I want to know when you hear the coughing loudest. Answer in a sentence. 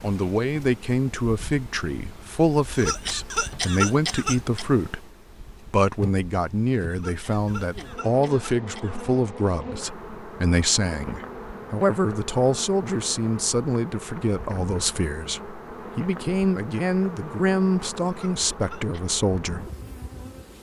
The volume of the coughing peaks at 4 seconds.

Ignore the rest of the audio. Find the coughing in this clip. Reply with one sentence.
The coughing can be heard from 2.7 to 4.7 s, from 6.9 to 9.4 s and from 18.1 to 19.1 s.